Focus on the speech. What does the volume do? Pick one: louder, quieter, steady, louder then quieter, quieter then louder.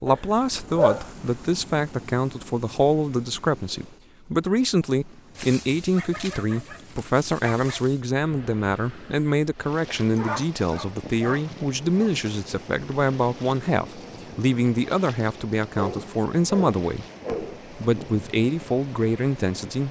steady.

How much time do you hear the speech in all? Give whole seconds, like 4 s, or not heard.
20 s.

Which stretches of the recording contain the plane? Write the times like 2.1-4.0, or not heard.
not heard.